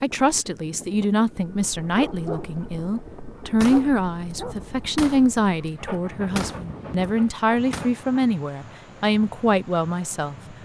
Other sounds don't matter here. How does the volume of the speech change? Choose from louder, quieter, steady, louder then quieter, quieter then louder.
steady.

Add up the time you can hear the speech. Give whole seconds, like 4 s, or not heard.
10 s.